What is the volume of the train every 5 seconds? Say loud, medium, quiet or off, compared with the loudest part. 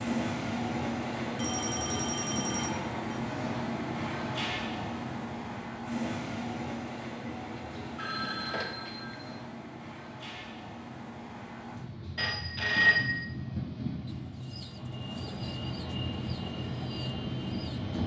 loud, medium, medium, loud.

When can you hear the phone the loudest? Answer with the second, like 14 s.
13 s.